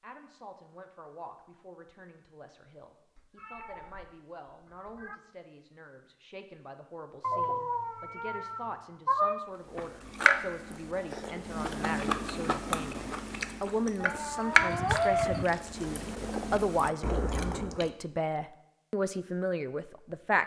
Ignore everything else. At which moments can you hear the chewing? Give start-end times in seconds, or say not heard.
9.7-17.9.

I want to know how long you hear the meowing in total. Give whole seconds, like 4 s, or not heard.
6 s.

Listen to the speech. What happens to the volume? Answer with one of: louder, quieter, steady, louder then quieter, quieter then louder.
louder.